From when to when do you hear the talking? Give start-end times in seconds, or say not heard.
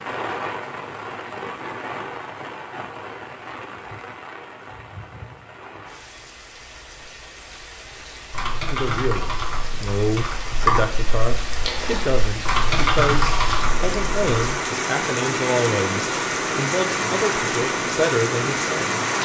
8.7-18.9.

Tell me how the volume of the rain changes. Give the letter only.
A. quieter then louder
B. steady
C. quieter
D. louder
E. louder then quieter
A.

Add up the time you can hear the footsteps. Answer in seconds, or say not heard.
not heard.